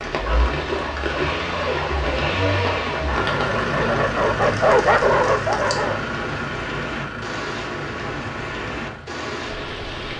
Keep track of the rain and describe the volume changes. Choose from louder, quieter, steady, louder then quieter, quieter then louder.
steady.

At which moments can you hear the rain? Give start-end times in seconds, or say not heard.
0.0-10.1.